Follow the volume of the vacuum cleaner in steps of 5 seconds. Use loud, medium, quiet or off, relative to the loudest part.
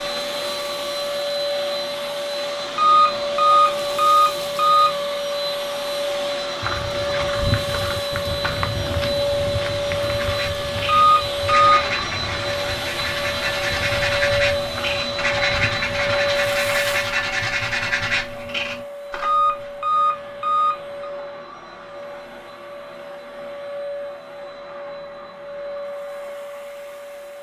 loud, loud, loud, loud, medium, medium.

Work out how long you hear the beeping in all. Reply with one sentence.
The beeping can be heard for 5 seconds in total.